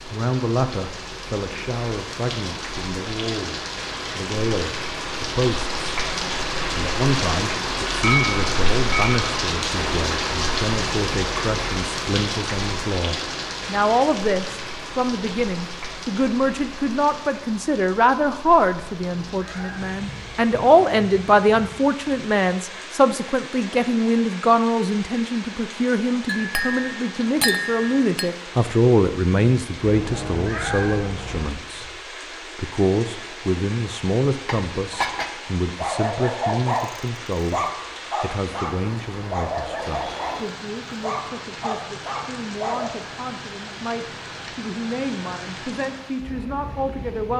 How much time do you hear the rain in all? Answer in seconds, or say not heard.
47 s.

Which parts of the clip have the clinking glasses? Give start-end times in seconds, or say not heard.
8.0-9.2, 26.2-28.2, 34.5-35.4.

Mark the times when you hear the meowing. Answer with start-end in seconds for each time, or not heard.
18.8-20.6, 29.8-31.6.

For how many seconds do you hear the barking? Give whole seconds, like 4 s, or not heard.
7 s.